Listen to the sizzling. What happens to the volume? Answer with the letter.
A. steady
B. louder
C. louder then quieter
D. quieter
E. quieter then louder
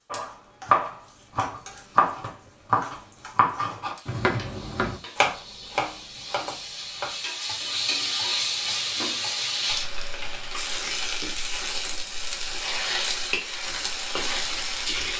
B.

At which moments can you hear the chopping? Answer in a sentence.
The chopping can be heard from 0.1 to 10.8 s.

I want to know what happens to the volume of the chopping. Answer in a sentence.
The volume of the chopping goes down.